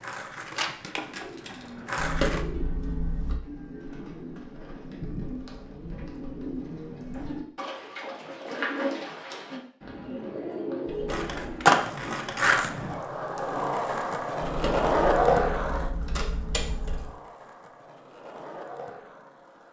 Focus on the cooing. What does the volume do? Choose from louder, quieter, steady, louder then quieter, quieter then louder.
louder.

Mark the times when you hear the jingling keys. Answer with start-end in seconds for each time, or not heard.
1.9-3.4, 10.8-11.4, 14.4-17.1.